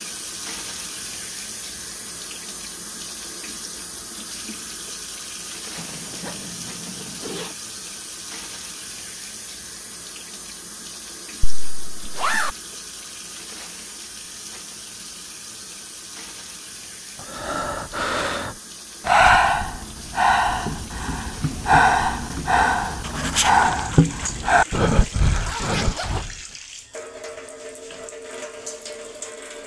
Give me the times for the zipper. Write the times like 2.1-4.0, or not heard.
5.8-7.5, 11.4-12.5, 25.2-26.2.